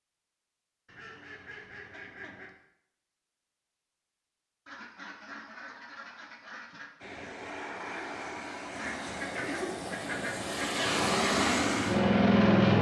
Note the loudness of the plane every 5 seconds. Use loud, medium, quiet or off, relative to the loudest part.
off, quiet, loud.